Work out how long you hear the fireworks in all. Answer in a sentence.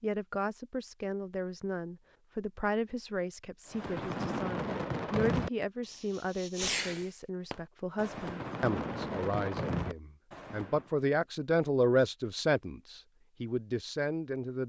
The fireworks can be heard for 7 seconds in total.